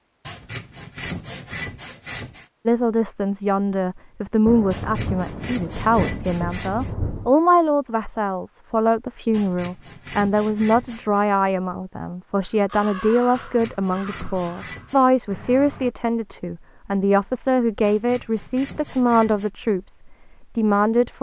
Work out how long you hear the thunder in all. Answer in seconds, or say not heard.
3 s.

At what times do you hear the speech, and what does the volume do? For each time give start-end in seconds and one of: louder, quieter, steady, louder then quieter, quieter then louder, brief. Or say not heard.
2.6-21.1 steady.